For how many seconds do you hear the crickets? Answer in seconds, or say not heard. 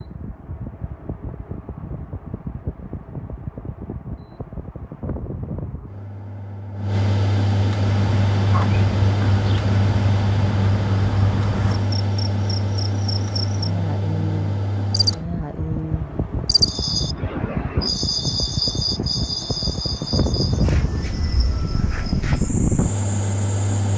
16 s.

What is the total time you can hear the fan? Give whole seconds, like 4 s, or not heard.
24 s.